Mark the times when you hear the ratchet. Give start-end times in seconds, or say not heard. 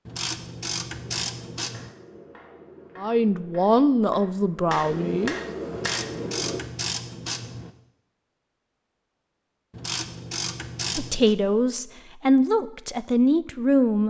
0.1-1.9, 5.7-7.7, 9.7-11.3.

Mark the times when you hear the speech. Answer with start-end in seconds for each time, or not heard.
3.0-5.3, 10.9-14.0.